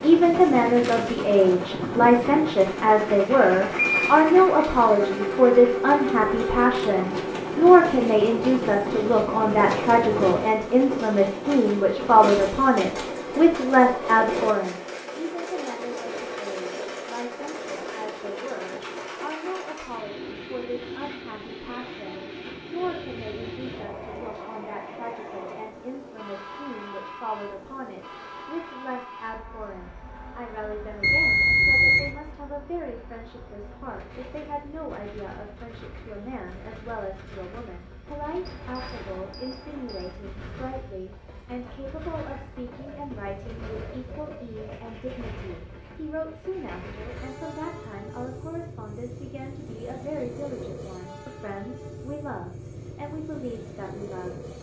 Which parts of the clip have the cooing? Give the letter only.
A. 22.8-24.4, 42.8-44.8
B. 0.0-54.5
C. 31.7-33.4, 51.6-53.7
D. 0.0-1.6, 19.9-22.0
A.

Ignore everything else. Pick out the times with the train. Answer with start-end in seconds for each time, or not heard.
0.0-54.5.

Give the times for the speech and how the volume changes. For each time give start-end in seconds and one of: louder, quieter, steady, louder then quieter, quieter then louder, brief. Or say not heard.
0.0-54.5 quieter.